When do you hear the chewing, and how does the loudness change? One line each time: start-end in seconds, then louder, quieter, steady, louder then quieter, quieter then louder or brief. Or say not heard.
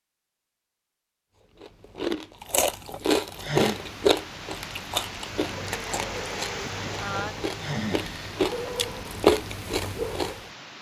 1.6-10.4 quieter then louder.